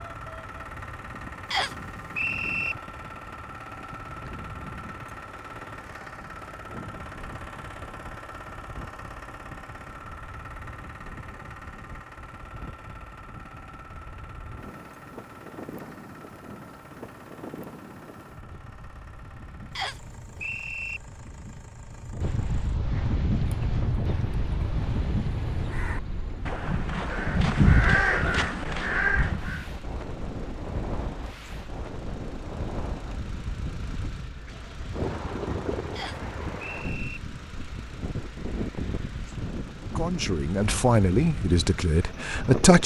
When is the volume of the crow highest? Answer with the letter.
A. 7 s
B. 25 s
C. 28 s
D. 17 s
C.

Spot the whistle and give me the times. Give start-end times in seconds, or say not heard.
1.5-2.8, 19.8-21.0, 36.0-37.2.